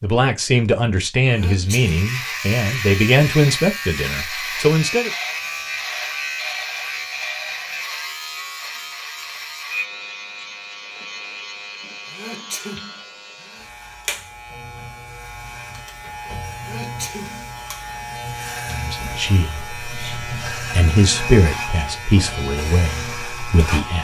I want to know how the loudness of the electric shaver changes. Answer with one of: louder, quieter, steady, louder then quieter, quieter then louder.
quieter then louder.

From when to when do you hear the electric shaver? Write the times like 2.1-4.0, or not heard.
1.6-23.9.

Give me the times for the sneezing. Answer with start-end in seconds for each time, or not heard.
1.2-2.0, 12.1-13.7, 16.6-18.2.